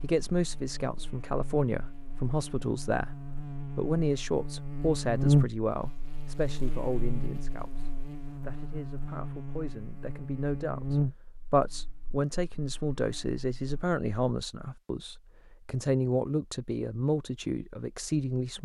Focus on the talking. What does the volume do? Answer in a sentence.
The volume of the talking goes down, then up.